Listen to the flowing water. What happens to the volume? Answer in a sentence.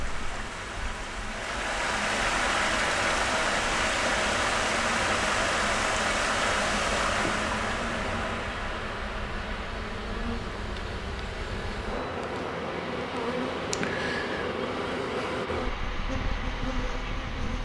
The volume of the flowing water goes down.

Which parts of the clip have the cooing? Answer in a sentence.
You can't hear the cooing here.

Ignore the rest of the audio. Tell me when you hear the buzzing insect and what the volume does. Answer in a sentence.
The buzzing insect can be heard from 0.0 to 17.6 s, getting louder.